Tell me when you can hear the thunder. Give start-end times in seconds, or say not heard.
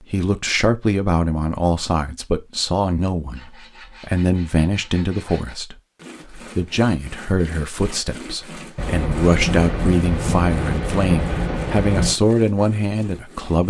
8.8-12.2.